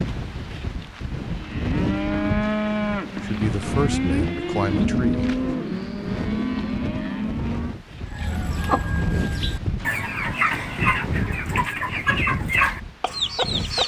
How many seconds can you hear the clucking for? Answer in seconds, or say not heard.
6 s.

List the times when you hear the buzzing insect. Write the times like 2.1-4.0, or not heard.
not heard.